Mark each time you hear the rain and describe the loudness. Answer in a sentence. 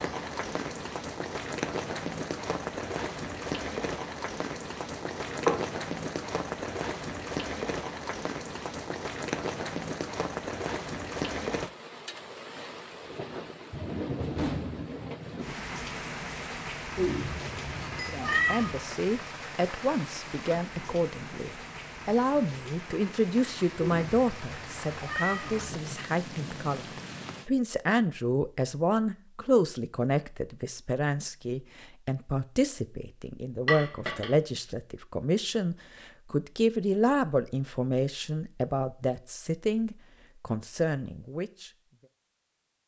The rain can be heard from 0.0 to 27.5 s, getting quieter.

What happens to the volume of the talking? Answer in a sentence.
The volume of the talking stays about the same.